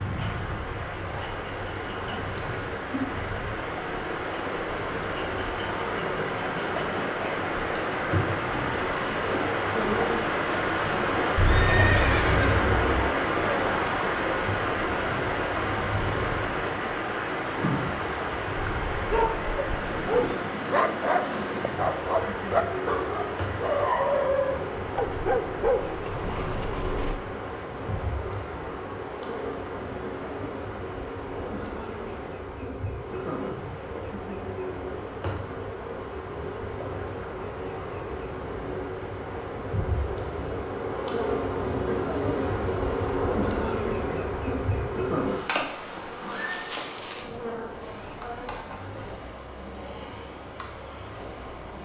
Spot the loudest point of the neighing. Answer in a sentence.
The volume of the neighing peaks at 12 seconds.